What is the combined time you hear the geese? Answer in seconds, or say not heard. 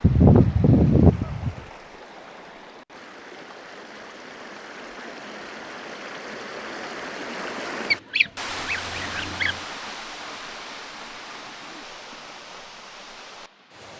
3 s.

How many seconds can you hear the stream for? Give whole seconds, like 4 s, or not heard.
14 s.